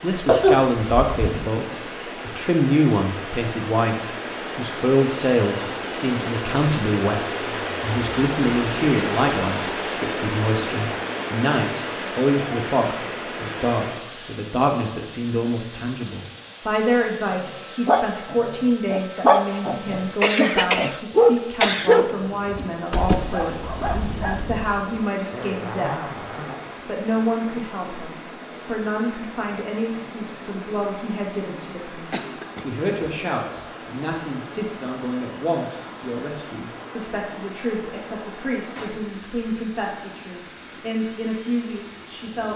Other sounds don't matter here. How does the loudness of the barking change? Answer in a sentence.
The loudness of the barking goes up, then down.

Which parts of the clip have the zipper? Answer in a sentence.
You can hear the zipper from 25.3 to 26.8 s.